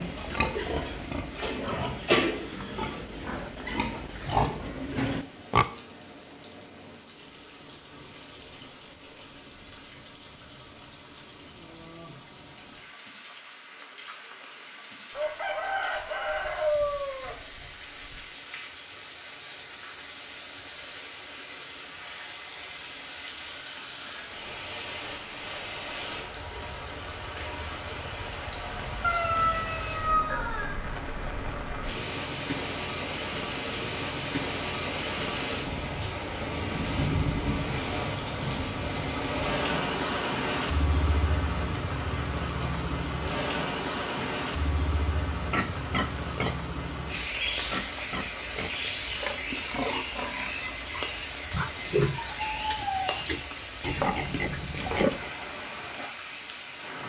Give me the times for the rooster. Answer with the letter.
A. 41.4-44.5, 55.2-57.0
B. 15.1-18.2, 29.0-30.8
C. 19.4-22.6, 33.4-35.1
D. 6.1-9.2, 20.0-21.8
B.